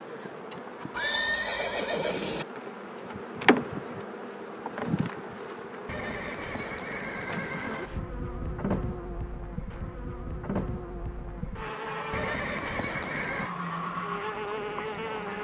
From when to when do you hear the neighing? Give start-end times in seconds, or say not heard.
0.9-2.5, 5.8-7.9, 12.1-13.5.